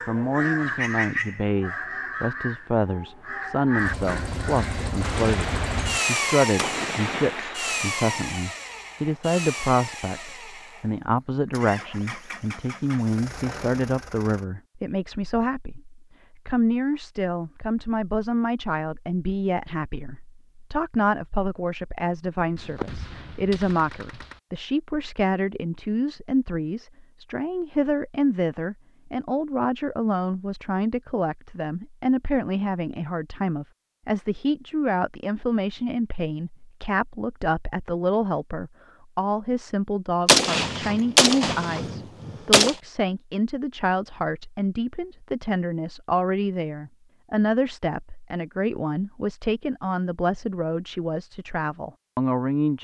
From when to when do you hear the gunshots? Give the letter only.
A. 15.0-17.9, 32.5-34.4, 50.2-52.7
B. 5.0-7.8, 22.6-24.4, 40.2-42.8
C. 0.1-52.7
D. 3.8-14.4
B.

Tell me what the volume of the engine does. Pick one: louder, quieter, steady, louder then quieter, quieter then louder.
quieter.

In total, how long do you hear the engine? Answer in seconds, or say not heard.
11 s.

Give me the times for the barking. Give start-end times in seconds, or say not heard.
not heard.